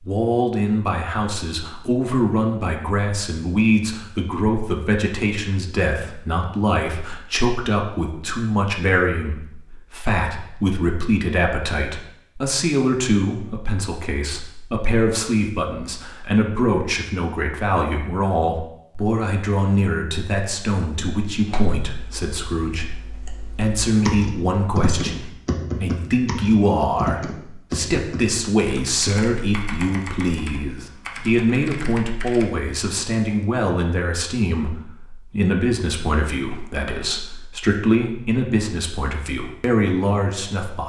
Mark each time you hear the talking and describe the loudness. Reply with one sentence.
The talking can be heard from 0.0 to 40.8 s, at a steady volume.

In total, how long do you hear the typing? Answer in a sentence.
The typing can be heard for 11 seconds in total.